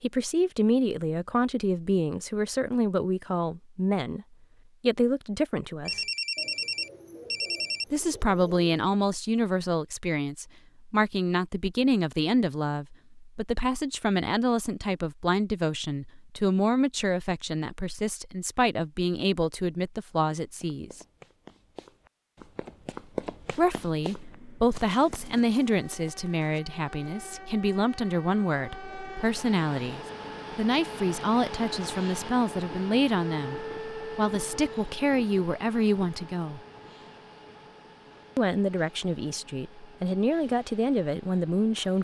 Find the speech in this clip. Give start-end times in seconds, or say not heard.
0.0-6.0, 7.9-21.0, 23.6-36.6, 38.4-41.9.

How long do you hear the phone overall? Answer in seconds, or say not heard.
2 s.